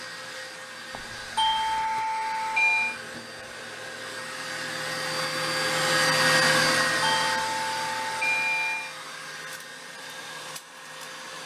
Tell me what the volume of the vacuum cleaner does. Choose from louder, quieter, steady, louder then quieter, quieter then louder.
louder then quieter.